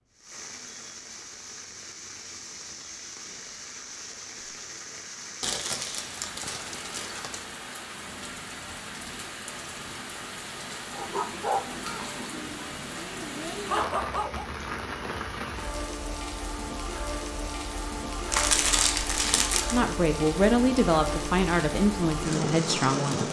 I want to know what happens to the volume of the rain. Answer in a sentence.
The loudness of the rain goes up.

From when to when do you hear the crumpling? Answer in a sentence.
The crumpling can be heard from 5.4 to 7.4 s and from 18.3 to 19.8 s.